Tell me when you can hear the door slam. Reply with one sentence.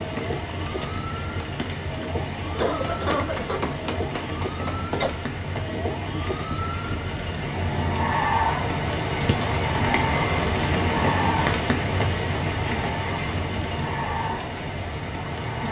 You can hear the door slam from 0.7 to 1.1 s.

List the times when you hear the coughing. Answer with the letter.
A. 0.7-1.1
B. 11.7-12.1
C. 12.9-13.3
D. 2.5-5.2
D.